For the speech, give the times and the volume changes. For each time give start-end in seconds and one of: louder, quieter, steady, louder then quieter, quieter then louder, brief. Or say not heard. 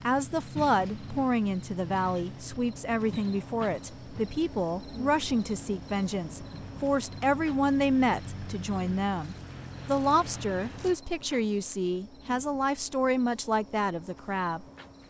0.0-14.7 steady.